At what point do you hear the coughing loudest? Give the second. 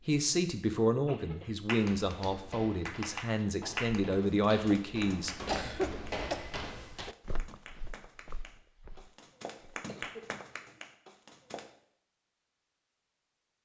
6 s.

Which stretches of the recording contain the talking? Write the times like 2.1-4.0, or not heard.
0.1-5.7.